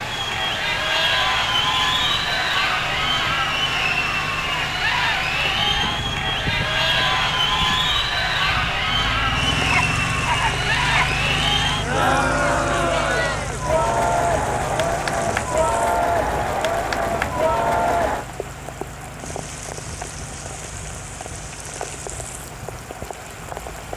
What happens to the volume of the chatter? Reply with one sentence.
The volume of the chatter stays about the same.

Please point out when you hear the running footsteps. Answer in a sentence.
The running footsteps can't be heard in this clip.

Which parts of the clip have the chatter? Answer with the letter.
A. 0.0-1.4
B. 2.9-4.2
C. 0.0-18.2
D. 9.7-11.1
C.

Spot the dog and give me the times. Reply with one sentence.
You can hear the dog from 9.7 to 11.1 s.